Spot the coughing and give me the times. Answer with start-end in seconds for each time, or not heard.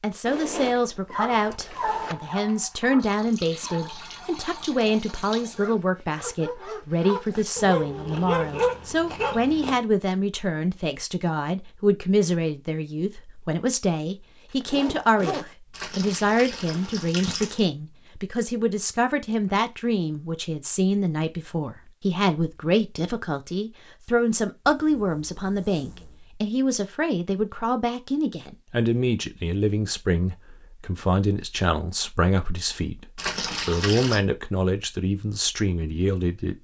not heard.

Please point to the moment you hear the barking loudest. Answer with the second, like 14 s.
9 s.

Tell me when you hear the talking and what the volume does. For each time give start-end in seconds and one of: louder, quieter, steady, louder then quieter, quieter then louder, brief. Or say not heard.
0.0-36.5 steady.